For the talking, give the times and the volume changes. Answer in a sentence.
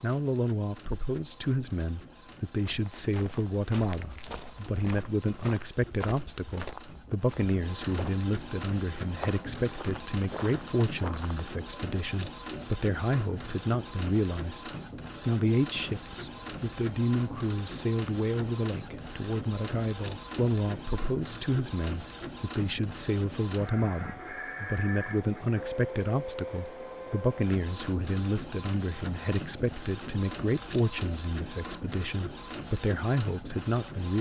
You can hear the talking from 0.0 to 34.1 s, at a steady volume.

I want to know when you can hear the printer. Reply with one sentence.
You can hear the printer from 0.0 to 34.1 s.